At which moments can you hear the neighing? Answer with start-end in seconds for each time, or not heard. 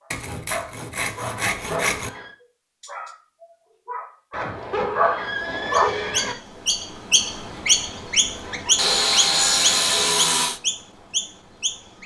1.3-2.4, 4.3-6.3, 8.4-10.2.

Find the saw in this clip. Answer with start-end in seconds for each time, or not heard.
0.1-2.1, 8.8-10.6.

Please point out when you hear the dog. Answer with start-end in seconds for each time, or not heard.
0.0-5.9.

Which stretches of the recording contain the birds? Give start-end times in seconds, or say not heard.
5.7-12.0.